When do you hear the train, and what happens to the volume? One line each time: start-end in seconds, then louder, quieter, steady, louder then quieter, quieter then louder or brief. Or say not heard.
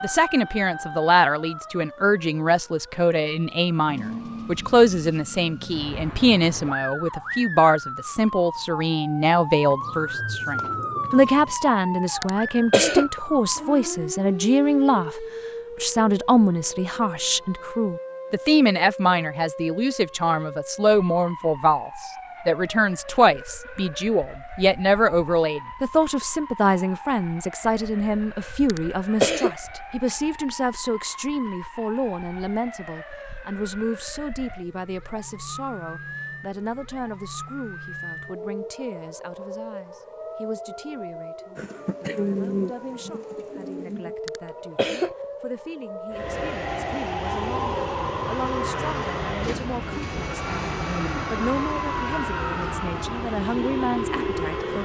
46.1-54.7 steady.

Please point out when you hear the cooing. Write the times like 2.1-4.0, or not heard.
9.8-11.6, 41.5-44.1.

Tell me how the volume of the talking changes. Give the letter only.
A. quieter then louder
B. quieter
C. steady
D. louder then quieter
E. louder
B.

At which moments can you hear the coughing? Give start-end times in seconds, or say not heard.
12.2-13.2, 28.6-29.6, 44.2-45.2.